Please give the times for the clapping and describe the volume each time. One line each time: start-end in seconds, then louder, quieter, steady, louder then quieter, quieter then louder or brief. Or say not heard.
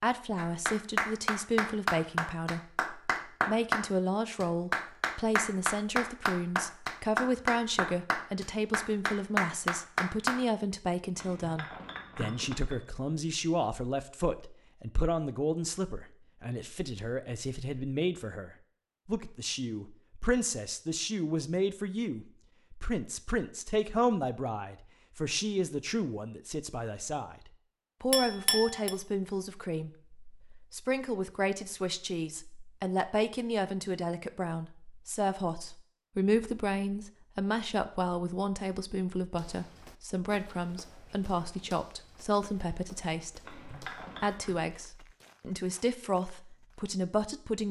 0.3-10.4 steady.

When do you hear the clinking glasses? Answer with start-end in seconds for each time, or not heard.
11.2-12.8, 28.1-28.9, 43.5-44.5.